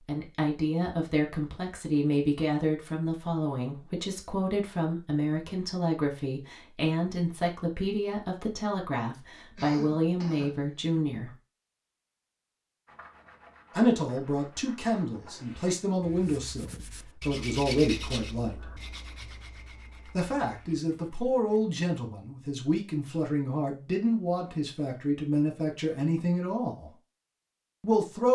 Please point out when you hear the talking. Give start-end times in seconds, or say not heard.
0.1-11.3, 13.8-18.6, 20.1-26.9, 27.8-28.3.